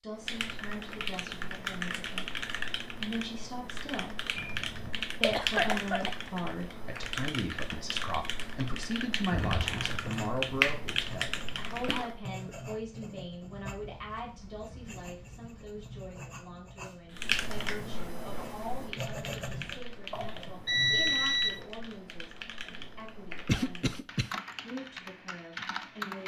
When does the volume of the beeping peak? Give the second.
21 s.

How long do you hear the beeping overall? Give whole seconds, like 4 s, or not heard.
3 s.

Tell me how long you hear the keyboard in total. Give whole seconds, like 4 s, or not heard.
21 s.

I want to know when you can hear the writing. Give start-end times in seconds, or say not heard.
9.8-19.8.